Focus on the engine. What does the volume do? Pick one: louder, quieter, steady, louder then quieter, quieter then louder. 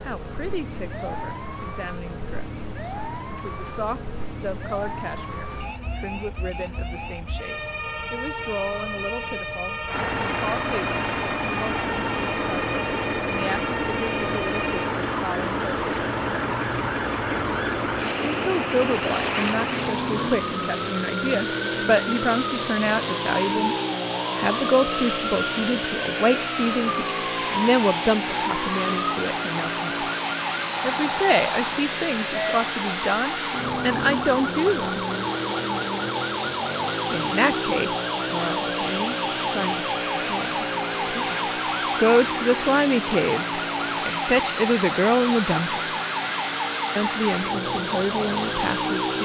steady.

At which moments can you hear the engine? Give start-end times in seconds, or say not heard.
9.8-49.1.